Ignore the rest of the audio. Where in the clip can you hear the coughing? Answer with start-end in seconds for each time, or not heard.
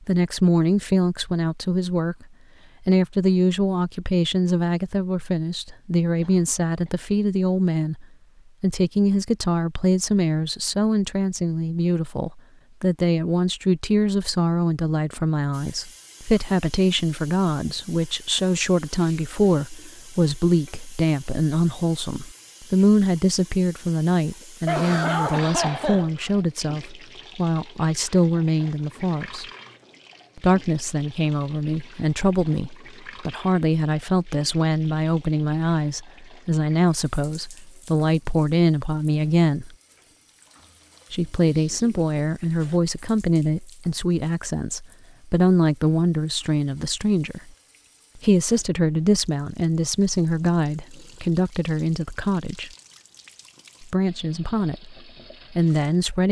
6.2-7.0, 24.6-26.3, 40.8-42.1.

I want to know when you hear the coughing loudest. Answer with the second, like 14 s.
25 s.